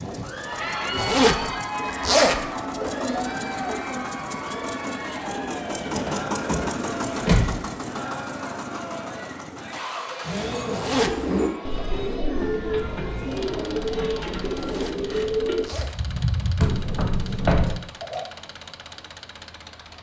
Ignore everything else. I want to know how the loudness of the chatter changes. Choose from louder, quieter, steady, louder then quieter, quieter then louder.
quieter.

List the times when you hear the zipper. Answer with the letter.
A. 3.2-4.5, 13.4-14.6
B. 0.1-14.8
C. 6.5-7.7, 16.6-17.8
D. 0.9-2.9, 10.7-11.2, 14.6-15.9
D.